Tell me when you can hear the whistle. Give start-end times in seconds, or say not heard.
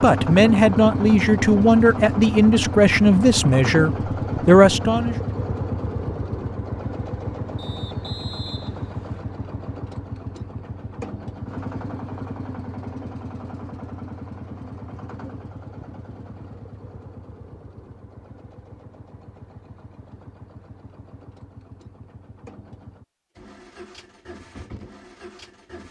7.5-9.2.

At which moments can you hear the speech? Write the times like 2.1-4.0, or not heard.
0.0-5.2.